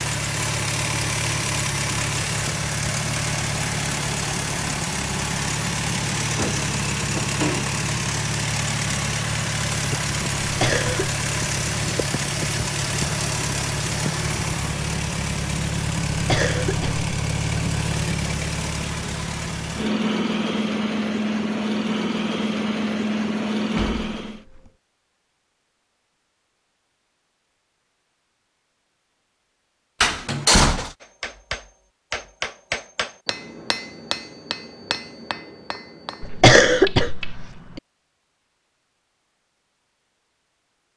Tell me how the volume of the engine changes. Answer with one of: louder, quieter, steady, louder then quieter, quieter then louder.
steady.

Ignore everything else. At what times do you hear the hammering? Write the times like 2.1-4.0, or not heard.
31.0-37.4.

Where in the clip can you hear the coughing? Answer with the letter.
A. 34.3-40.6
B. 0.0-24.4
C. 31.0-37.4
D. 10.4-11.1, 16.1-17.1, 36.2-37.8
D.